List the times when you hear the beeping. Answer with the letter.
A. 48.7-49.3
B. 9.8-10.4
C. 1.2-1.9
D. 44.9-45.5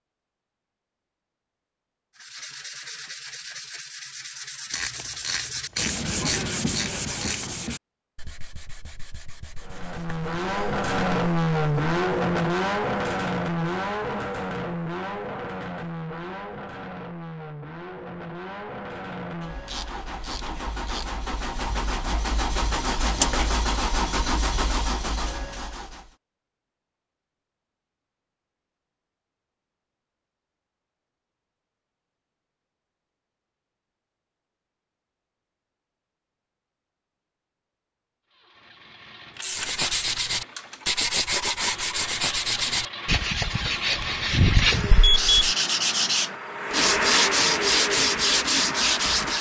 D.